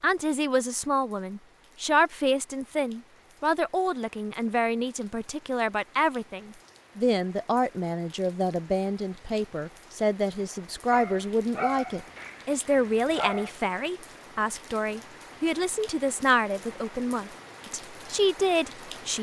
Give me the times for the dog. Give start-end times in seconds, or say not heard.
10.9-13.5.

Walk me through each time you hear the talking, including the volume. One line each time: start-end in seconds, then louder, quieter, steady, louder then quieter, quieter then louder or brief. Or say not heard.
0.0-19.1 steady.